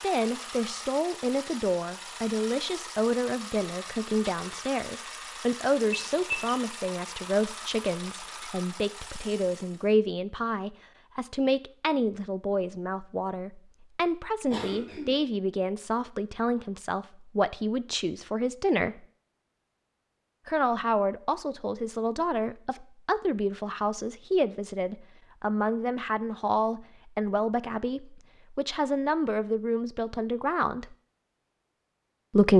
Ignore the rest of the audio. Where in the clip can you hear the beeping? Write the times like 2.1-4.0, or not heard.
5.9-6.6.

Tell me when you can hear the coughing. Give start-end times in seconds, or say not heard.
14.4-15.2.